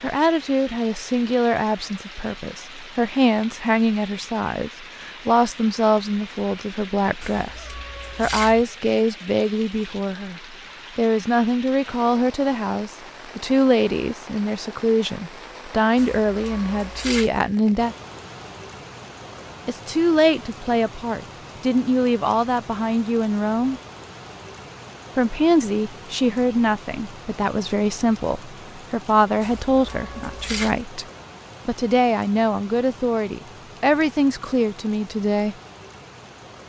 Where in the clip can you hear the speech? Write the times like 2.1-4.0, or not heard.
0.0-17.9, 19.6-23.8, 25.1-31.1, 31.6-35.5.